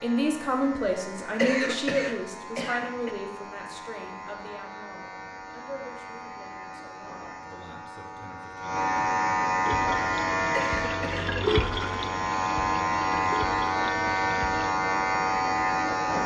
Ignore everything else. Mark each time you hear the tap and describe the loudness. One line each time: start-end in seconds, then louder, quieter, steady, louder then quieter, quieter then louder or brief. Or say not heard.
9.7-14.8 louder then quieter.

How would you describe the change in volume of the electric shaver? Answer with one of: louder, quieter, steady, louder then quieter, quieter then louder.
louder.